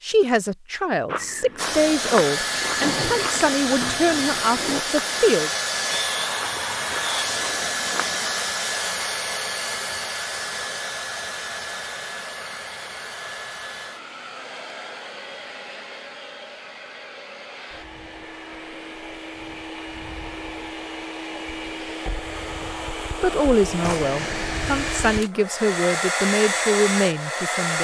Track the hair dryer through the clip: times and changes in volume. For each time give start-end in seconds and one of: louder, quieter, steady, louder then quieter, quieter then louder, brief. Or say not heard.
1.6-27.7 quieter then louder.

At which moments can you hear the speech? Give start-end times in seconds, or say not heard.
0.0-5.5, 23.2-27.7.